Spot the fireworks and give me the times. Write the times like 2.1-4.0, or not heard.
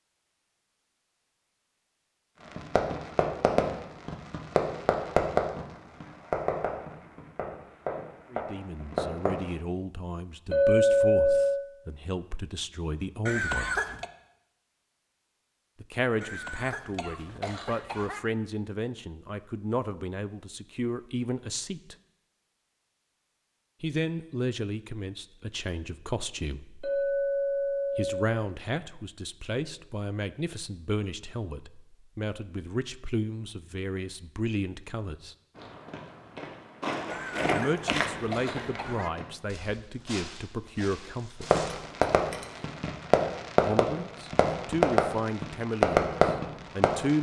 2.4-9.5, 41.4-47.1.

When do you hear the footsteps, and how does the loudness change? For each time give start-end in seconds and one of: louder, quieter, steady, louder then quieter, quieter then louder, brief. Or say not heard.
35.5-41.9 louder then quieter.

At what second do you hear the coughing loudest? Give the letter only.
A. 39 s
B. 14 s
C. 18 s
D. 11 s
B.